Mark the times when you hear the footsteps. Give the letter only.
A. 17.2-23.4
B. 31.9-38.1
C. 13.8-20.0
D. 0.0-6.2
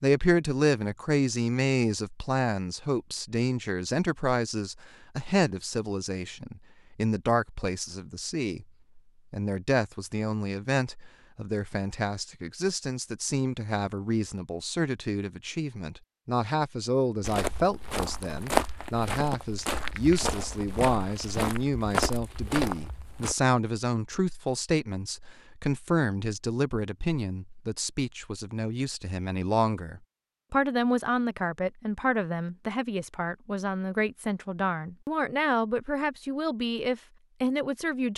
A.